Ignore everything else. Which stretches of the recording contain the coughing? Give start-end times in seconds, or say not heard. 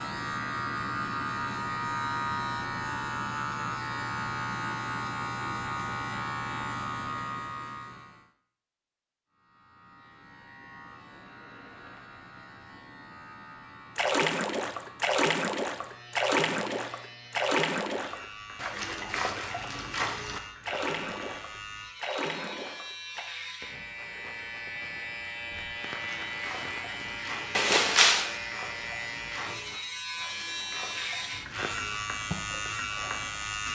not heard.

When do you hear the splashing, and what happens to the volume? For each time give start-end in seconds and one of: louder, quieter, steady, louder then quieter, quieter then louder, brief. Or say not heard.
13.9-23.2 quieter
25.5-33.6 steady.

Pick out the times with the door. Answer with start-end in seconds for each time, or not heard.
27.6-28.4.